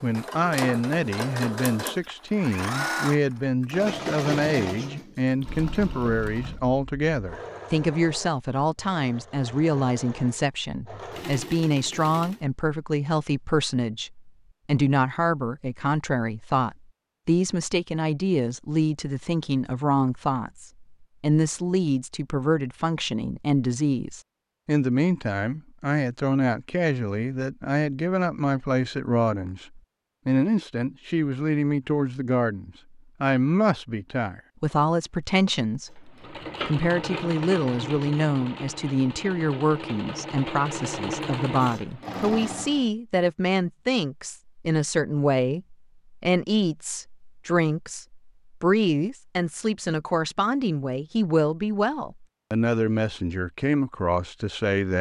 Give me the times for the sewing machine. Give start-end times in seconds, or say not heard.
0.0-12.4, 36.1-42.9.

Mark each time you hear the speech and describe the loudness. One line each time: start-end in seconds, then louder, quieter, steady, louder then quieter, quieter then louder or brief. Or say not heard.
0.0-54.9 steady.